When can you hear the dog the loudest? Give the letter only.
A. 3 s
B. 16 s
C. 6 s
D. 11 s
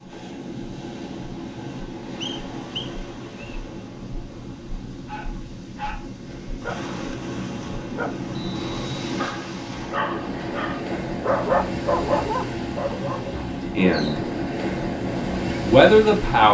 D.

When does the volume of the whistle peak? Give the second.
3 s.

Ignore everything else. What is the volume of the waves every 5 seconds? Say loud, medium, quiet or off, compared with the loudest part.
medium, medium, loud, loud.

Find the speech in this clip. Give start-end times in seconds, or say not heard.
13.6-14.2, 15.6-16.4.